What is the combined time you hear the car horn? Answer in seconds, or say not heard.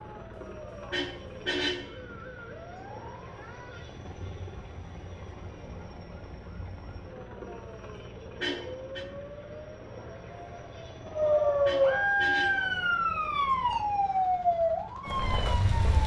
3 s.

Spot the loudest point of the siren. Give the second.
12 s.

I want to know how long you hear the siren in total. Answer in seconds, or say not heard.
16 s.